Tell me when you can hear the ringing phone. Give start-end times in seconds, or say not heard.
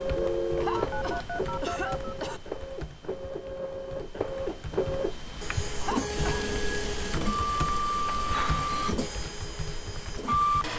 0.1-1.9, 8.1-8.9.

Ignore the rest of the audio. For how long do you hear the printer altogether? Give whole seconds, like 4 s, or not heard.
11 s.